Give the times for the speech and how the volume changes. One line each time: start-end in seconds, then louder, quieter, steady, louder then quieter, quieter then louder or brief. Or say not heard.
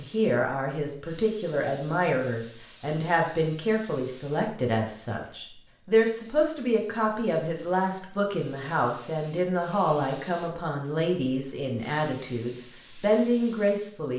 0.0-14.1 steady.